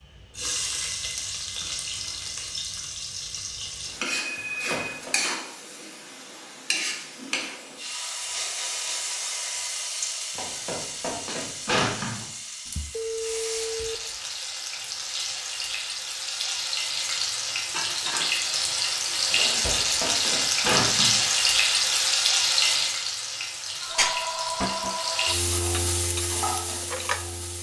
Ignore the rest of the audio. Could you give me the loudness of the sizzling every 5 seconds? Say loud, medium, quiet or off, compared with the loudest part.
medium, medium, medium, loud, loud, medium.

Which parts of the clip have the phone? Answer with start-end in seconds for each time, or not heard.
4.0-5.0, 12.7-14.2, 23.8-25.4.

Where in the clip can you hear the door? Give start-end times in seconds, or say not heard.
4.3-5.1, 10.3-12.2, 19.3-21.2.